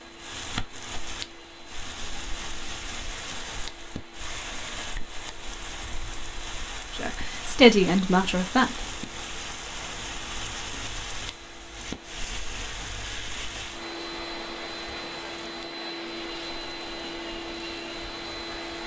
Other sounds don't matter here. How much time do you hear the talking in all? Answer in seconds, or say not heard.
2 s.